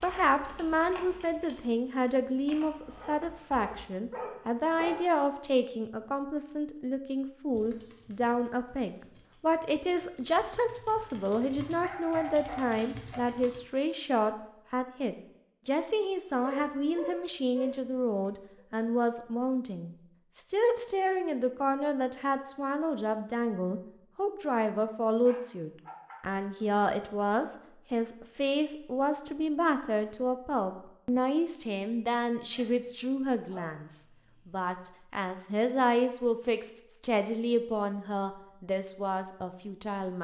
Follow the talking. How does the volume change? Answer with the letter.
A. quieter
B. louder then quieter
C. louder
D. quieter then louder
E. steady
E.